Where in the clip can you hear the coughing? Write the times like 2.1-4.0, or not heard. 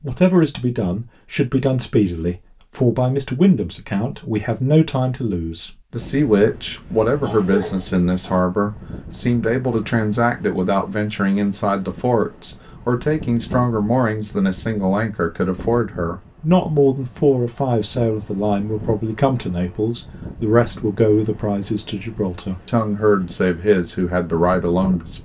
7.2-8.4.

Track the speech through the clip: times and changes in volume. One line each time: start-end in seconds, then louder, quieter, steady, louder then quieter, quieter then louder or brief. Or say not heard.
0.0-25.2 steady.